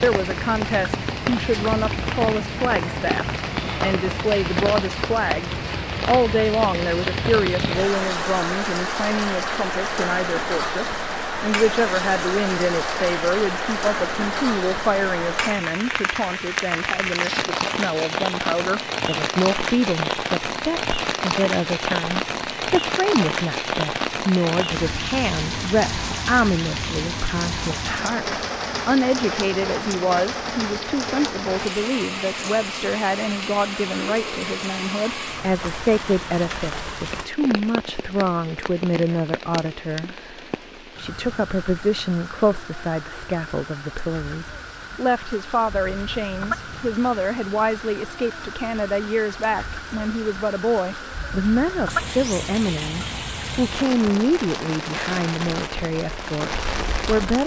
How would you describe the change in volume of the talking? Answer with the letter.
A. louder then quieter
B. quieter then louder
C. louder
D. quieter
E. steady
E.